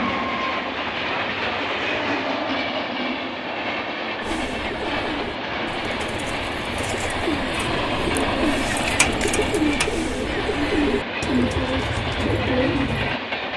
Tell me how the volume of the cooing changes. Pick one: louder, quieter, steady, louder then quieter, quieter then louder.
louder.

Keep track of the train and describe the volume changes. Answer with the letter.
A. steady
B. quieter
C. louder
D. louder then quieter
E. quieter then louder
A.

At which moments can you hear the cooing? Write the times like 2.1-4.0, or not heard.
4.2-13.2.